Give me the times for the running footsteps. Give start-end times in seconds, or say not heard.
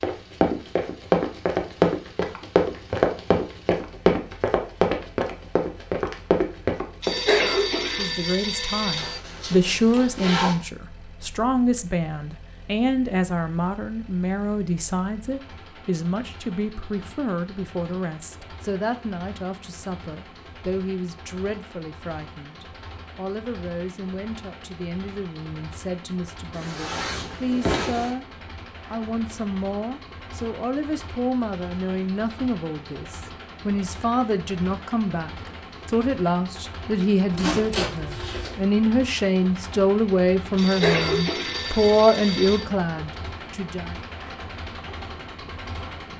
0.0-7.2.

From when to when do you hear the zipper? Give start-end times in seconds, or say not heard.
8.9-10.6, 26.5-28.1, 37.3-38.6.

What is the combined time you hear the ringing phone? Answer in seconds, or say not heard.
4 s.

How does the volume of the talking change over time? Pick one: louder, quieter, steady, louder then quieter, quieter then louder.
quieter then louder.